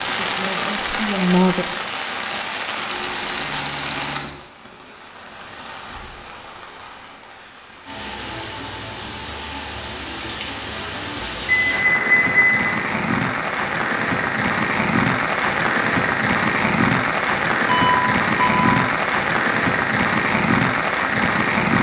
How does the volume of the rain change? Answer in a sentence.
The volume of the rain goes down, then up.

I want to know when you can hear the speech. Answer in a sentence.
You can hear the speech from 0.1 to 1.8 s.